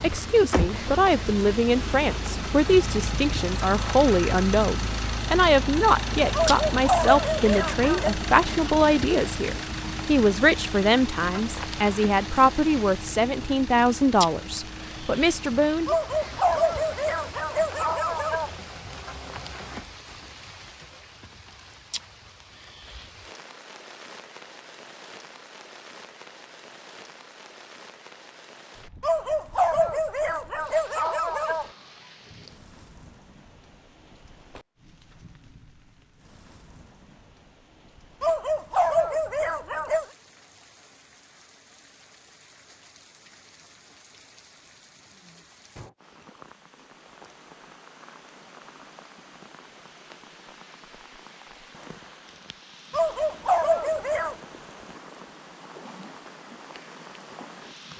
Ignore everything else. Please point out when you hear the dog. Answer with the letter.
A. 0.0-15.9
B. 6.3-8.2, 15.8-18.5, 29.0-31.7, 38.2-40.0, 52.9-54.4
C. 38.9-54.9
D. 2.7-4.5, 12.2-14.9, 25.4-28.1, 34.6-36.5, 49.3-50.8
B.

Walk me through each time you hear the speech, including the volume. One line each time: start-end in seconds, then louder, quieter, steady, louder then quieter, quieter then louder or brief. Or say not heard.
0.0-15.9 steady.